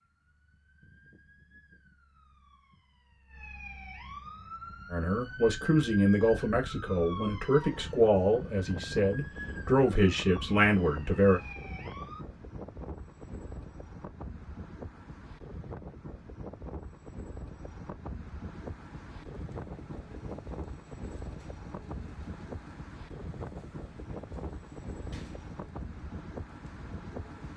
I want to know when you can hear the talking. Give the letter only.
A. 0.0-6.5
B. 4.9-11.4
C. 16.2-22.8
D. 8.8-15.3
B.